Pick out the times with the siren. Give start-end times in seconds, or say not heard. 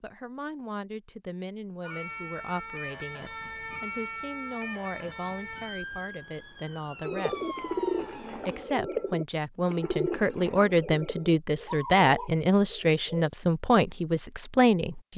1.8-8.7.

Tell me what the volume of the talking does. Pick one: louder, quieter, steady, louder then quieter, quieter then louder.
louder.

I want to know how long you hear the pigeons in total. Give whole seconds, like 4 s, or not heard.
6 s.